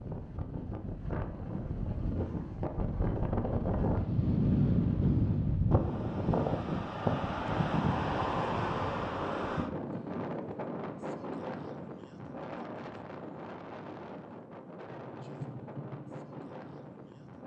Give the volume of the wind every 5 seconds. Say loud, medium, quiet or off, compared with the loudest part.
loud, loud, medium, quiet.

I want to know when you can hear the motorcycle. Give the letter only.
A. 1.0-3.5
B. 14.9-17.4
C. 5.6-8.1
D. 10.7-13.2
B.